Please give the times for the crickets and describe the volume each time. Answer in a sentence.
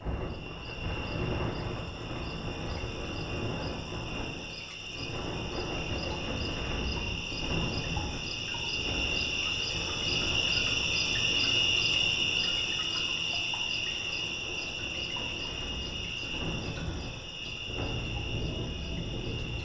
You can hear the crickets from 0.0 to 19.6 s, getting louder then quieter.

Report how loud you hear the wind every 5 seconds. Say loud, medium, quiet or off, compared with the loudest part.
loud, loud, medium, loud.